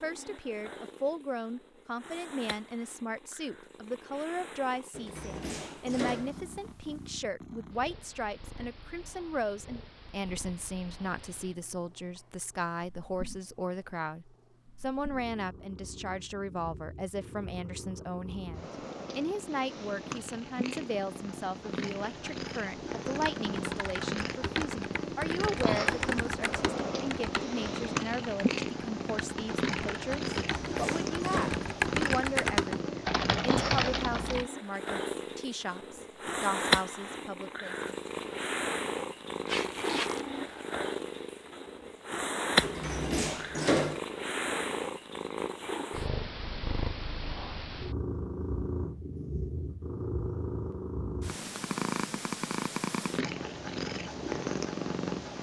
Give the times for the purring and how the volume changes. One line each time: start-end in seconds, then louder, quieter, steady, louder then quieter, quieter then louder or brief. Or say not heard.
0.0-55.3 louder.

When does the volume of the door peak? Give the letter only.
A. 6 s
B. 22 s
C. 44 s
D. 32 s
C.